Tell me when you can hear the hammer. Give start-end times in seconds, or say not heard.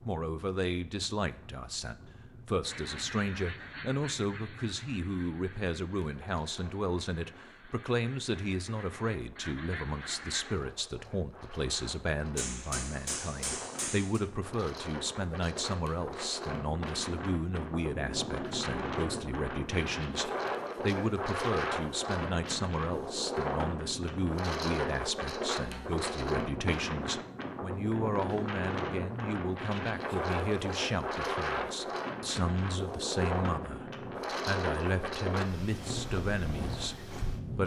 12.3-14.2.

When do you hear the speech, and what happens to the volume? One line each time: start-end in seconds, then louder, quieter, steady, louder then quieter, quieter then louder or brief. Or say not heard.
0.1-37.6 steady.